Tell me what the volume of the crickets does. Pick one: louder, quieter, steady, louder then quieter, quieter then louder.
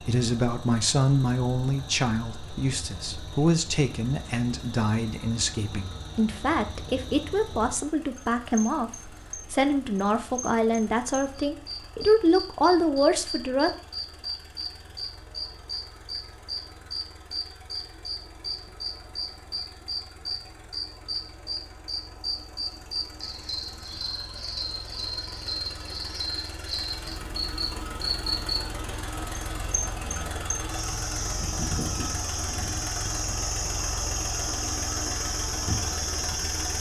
louder.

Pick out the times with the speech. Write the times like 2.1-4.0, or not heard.
0.1-13.7.